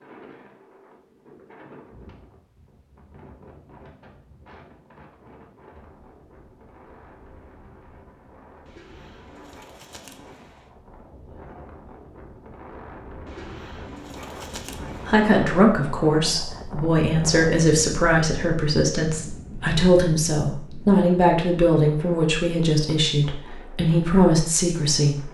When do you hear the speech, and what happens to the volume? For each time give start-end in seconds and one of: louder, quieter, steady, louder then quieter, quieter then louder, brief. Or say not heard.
15.1-25.2 steady.